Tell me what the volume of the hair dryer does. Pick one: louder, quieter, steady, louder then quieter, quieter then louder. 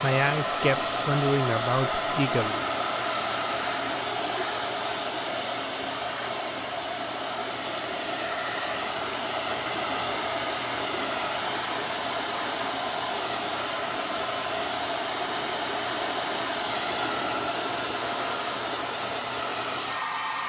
steady.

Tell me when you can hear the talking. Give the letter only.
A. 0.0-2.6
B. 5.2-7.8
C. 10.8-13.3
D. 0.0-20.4
A.